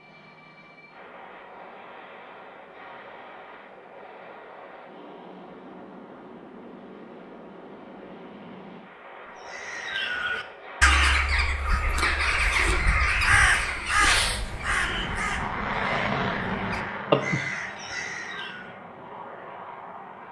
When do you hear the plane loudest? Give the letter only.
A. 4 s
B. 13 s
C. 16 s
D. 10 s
C.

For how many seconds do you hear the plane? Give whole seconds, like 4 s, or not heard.
20 s.